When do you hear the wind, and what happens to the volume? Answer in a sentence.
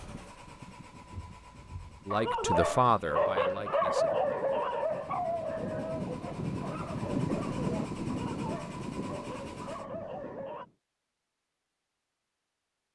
You can hear the wind from 0.0 to 10.8 s, getting louder then quieter.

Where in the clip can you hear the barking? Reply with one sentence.
You can hear the barking from 1.1 to 10.7 s.